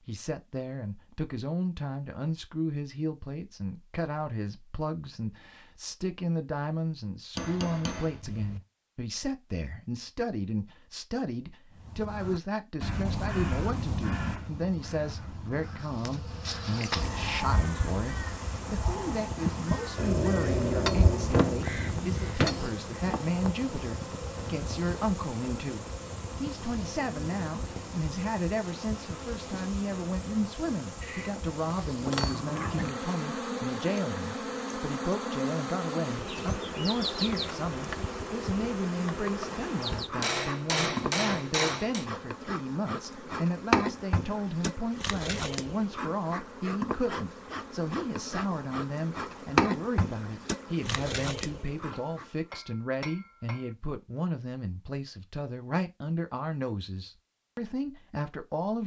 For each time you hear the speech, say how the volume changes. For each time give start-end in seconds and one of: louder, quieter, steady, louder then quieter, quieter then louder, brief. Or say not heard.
0.1-58.8 steady.